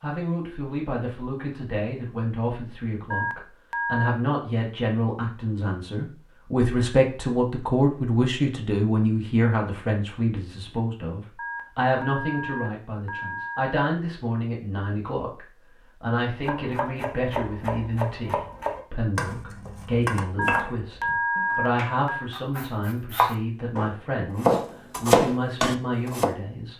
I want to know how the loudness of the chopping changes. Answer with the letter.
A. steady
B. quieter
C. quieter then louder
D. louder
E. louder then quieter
D.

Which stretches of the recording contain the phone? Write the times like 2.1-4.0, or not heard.
3.1-4.2, 11.3-13.8, 20.4-22.2.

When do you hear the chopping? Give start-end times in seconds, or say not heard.
16.4-26.4.